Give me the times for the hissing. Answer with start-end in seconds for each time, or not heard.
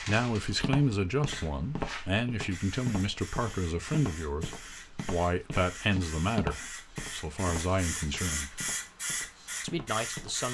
0.0-10.5.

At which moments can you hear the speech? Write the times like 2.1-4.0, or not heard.
0.0-8.7, 9.6-10.5.